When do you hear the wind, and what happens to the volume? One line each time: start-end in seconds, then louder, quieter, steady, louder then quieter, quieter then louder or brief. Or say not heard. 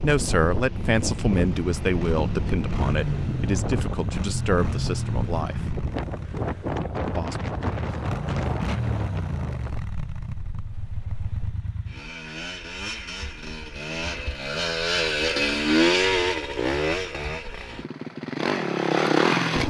0.0-11.7 quieter.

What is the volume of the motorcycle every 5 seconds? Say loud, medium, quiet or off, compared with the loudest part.
medium, medium, medium, loud.